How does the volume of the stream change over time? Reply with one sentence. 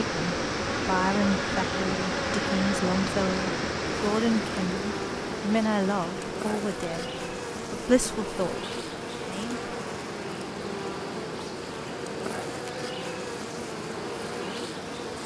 The volume of the stream goes down.